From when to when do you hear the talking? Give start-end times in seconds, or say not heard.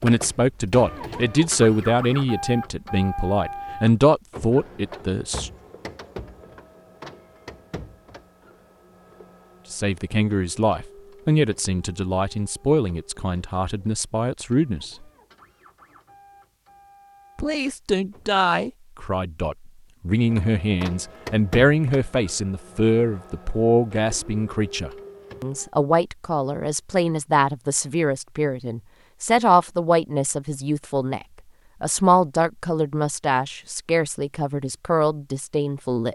0.0-5.5, 9.7-15.1, 17.4-36.0.